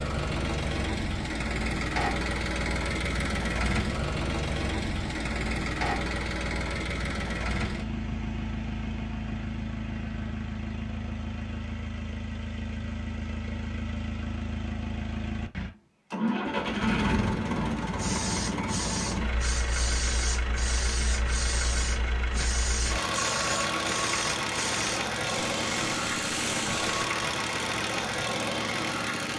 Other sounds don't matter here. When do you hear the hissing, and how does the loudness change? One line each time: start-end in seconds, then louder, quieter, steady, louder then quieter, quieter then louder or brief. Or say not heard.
17.9-27.1 steady.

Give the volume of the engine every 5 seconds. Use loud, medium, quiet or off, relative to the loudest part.
loud, loud, medium, loud, loud, loud.